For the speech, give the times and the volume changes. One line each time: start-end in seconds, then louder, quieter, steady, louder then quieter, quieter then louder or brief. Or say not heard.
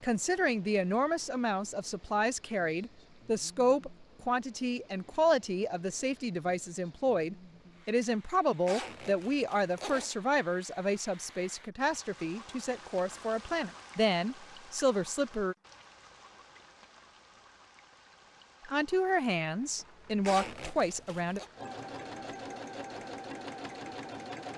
0.0-15.6 steady
18.6-21.4 brief.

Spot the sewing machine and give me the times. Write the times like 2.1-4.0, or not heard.
21.6-24.5.